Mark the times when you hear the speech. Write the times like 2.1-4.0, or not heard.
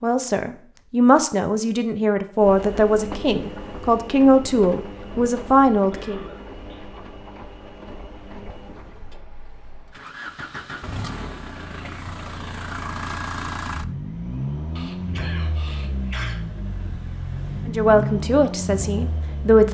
0.0-6.2, 17.6-19.6.